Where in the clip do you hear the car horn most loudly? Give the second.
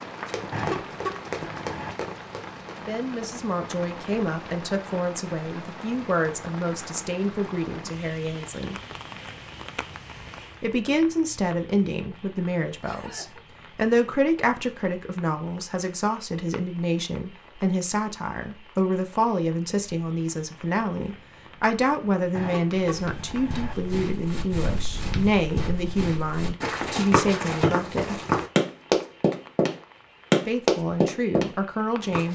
1 s.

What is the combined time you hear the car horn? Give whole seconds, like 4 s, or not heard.
3 s.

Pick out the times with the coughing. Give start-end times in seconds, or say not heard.
12.8-13.4.